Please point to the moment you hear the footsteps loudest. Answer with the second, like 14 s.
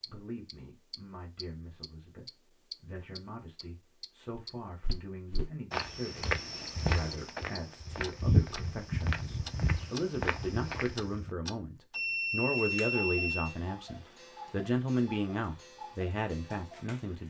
8 s.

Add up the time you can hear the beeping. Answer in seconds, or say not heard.
2 s.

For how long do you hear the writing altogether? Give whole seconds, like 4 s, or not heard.
not heard.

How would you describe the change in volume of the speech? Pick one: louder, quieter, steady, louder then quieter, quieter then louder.
louder.